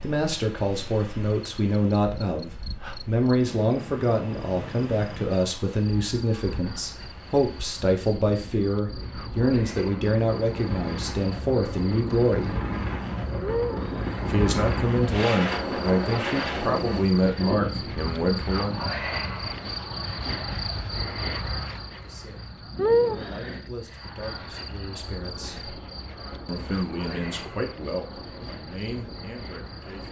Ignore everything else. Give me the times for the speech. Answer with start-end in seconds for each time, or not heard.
0.0-12.6, 14.2-18.8, 21.9-25.8, 26.4-30.0.